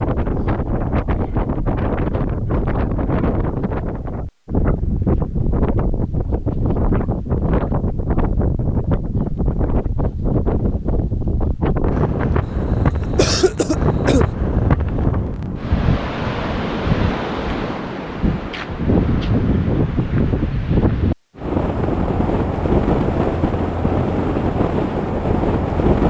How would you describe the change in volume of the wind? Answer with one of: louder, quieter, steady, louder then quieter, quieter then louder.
steady.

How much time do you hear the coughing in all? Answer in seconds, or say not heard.
2 s.